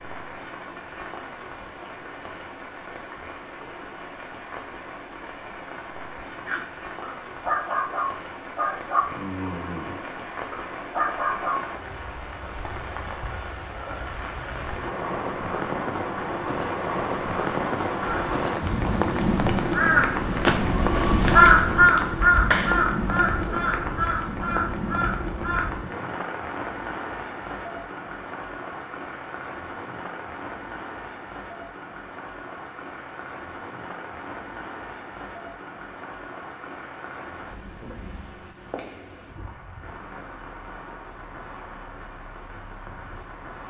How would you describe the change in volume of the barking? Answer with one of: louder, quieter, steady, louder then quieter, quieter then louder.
quieter then louder.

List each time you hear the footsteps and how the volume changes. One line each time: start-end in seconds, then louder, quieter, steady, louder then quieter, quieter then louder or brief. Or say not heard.
not heard.